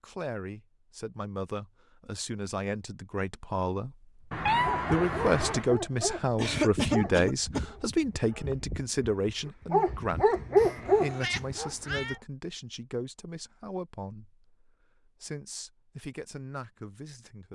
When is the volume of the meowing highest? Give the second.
5 s.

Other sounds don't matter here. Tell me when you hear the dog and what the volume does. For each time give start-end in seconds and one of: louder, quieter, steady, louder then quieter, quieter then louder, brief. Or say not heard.
4.7-12.2 quieter then louder.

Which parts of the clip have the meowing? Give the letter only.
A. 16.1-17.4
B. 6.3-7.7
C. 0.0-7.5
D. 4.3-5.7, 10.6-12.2
D.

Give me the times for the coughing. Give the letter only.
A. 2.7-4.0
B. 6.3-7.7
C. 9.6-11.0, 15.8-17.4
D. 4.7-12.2
B.